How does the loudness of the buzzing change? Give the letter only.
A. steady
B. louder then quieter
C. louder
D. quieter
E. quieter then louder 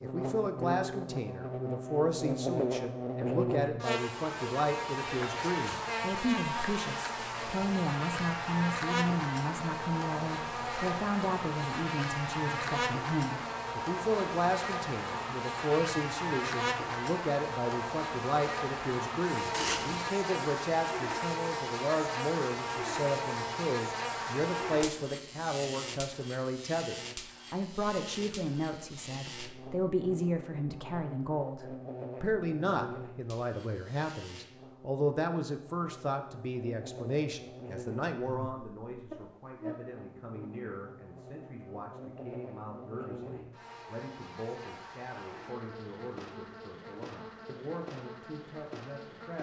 D.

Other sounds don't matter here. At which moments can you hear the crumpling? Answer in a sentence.
You can hear the crumpling from 19.5 to 20.1 s.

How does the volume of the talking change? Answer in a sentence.
The loudness of the talking goes down.